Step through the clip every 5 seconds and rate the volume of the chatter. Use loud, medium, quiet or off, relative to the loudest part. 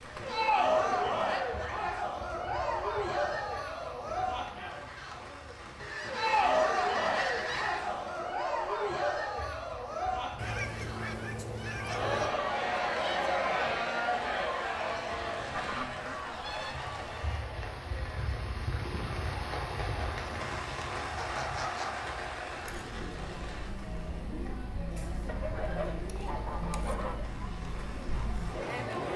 loud, loud, loud, medium, medium, medium.